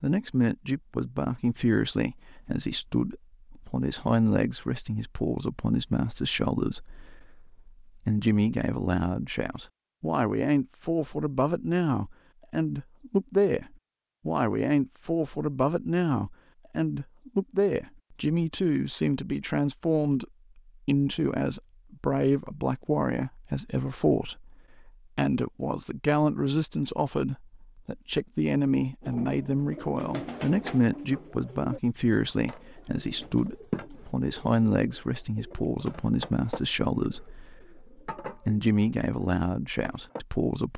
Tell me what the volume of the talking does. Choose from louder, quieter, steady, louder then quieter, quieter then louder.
steady.